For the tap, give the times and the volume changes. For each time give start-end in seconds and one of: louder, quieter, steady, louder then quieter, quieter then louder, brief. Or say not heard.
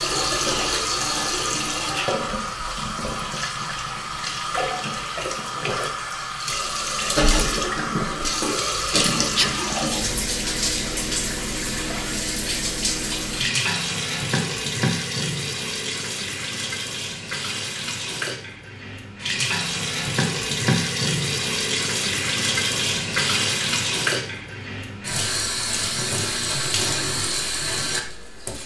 0.0-28.6 steady.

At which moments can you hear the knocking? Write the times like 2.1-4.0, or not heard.
not heard.